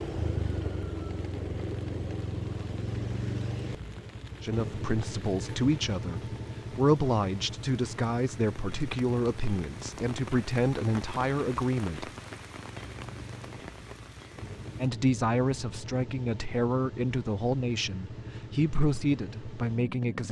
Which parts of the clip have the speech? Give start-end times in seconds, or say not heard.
4.4-12.1, 14.8-20.2.